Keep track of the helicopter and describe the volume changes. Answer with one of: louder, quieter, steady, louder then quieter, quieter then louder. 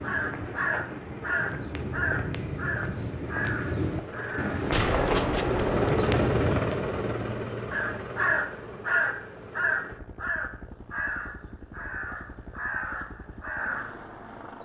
louder then quieter.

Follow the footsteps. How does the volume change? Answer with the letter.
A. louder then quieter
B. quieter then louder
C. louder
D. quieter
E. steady
C.